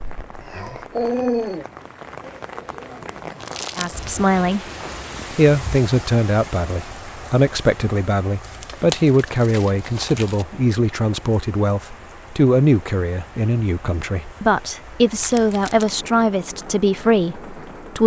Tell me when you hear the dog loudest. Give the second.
1 s.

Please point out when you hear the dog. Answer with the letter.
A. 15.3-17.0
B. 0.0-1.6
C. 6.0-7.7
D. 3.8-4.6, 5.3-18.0
B.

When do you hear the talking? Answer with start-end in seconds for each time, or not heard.
3.8-4.6, 5.3-18.0.